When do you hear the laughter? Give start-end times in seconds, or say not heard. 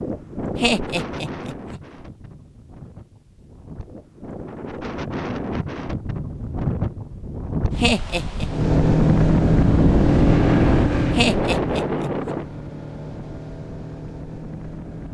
0.6-1.8, 7.8-8.5, 11.1-12.3.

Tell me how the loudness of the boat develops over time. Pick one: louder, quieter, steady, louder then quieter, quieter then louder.
quieter.